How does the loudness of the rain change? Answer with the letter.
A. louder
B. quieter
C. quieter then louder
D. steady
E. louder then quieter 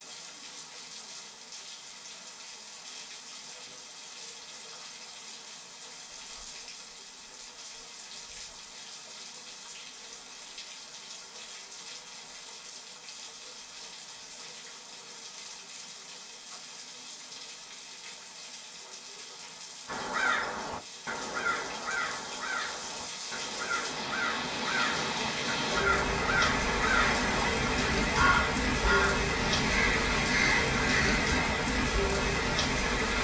A.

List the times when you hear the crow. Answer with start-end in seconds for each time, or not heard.
19.9-31.4.